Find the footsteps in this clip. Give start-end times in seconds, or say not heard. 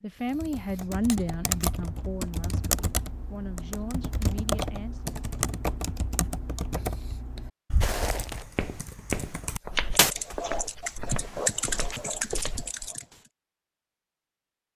7.8-12.9.